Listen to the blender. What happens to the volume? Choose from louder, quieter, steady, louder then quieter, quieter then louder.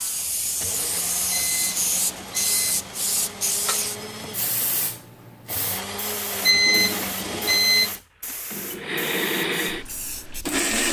louder.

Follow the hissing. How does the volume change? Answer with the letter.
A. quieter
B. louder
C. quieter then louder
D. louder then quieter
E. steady
A.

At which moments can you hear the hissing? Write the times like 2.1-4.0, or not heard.
0.0-10.7.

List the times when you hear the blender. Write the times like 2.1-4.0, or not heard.
0.0-10.8.